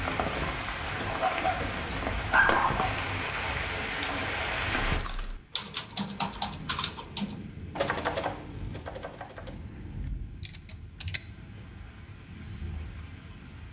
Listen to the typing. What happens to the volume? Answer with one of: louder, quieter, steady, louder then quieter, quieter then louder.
quieter.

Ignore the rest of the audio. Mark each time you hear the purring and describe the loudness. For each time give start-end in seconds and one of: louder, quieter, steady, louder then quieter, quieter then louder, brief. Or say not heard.
not heard.